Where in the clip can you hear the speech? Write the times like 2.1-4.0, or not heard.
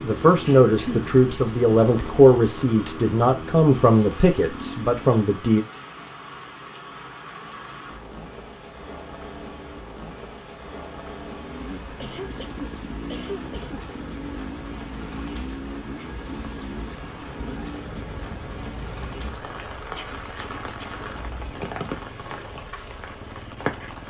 0.0-5.6.